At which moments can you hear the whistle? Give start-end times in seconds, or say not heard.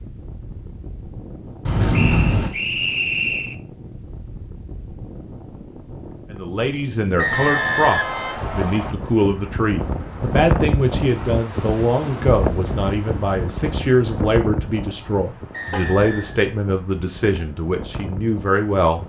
1.9-3.5, 7.2-8.9, 15.5-16.4.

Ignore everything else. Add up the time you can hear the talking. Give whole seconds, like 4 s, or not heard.
13 s.